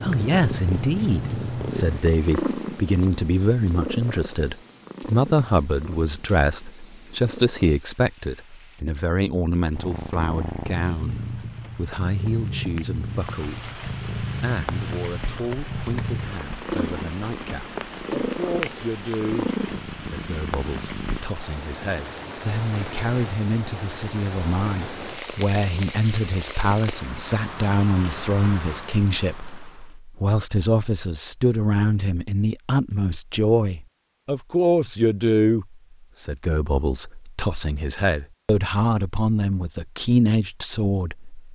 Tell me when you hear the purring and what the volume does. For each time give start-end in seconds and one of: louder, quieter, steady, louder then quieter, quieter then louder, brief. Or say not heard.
0.0-7.8 quieter
9.8-21.2 steady.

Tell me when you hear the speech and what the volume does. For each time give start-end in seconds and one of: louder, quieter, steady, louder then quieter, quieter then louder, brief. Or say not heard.
0.0-41.5 quieter then louder.